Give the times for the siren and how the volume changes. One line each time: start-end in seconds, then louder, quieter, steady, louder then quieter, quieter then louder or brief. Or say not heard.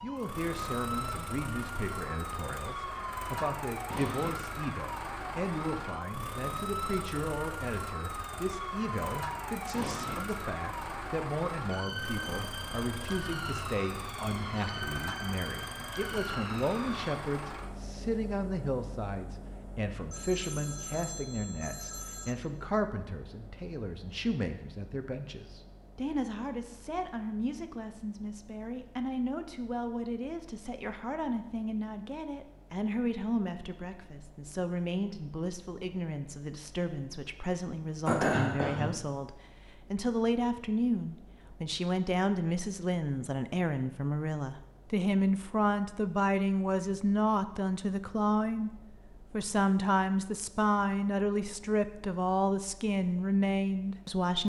0.0-17.1 steady.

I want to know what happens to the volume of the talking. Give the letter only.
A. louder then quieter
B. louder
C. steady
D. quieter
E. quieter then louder
B.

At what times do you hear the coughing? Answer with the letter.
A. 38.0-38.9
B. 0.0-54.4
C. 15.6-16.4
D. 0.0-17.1
A.